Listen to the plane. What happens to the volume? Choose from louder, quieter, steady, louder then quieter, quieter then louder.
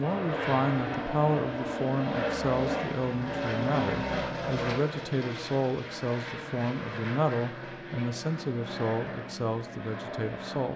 quieter.